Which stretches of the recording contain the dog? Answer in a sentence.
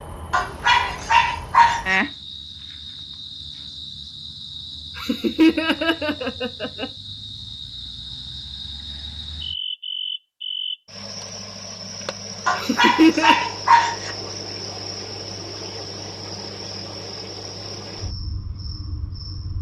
You can hear the dog from 0.3 to 2.0 s and from 12.4 to 14.2 s.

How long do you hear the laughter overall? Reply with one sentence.
You can hear the laughter for 3 seconds altogether.